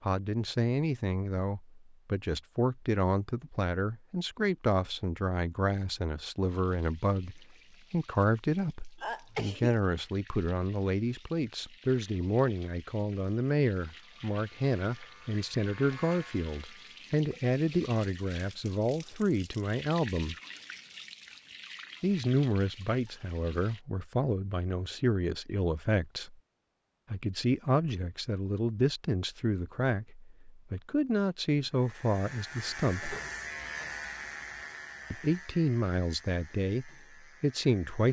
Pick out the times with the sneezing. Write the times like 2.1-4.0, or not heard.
9.0-9.8.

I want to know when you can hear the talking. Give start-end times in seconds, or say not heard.
0.0-20.4, 22.0-26.4, 27.1-33.1, 35.1-38.0.